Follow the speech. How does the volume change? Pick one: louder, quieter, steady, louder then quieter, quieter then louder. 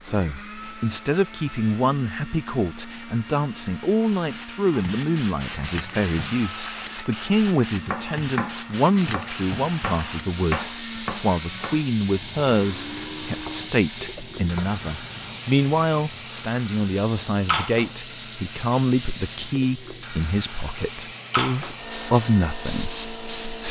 steady.